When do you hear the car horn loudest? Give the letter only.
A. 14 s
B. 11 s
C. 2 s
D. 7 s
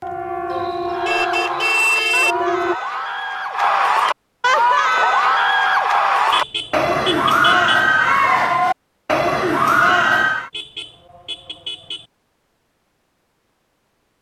C.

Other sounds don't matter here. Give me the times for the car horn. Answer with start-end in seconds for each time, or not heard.
0.5-2.4, 6.3-7.8, 10.5-12.1.